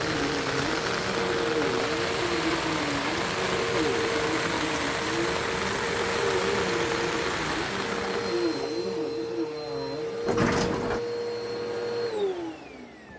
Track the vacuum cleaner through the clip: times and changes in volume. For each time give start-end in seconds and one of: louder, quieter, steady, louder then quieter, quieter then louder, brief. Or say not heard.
0.0-13.1 steady.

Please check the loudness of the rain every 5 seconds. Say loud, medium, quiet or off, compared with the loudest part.
loud, loud, off.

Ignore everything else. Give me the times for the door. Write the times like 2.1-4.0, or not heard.
10.2-11.0.